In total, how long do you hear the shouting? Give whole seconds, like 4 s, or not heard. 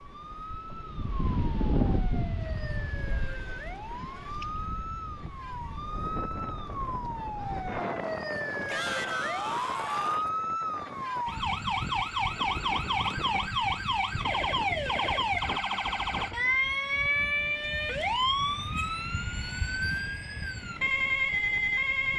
2 s.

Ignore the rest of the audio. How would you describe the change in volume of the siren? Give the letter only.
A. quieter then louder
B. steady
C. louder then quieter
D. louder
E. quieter
D.